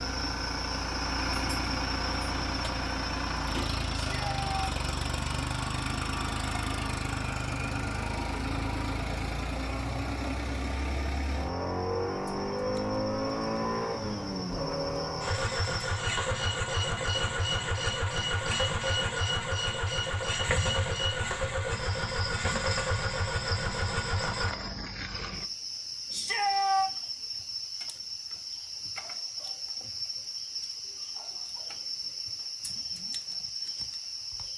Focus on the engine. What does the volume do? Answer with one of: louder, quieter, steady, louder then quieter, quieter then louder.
steady.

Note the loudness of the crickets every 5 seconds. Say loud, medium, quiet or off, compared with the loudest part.
loud, medium, medium, loud, loud, loud, loud.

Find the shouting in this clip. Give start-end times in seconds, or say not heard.
4.0-4.7, 26.1-26.9.